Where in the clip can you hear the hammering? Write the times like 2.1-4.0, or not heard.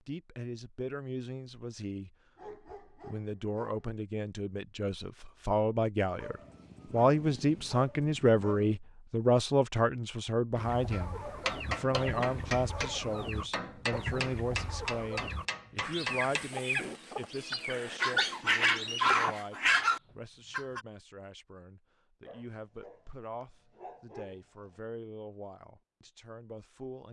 10.9-17.0.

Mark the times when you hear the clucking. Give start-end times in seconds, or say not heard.
10.6-20.9.